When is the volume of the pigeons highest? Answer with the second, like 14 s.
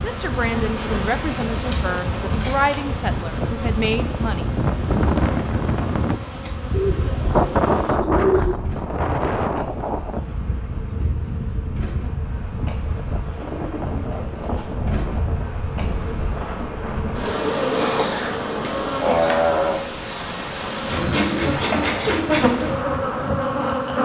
8 s.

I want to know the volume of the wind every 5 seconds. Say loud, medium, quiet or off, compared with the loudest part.
medium, loud, medium, medium, medium.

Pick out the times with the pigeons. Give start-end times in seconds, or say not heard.
0.8-2.8, 6.7-8.8, 13.4-14.8, 20.9-22.3.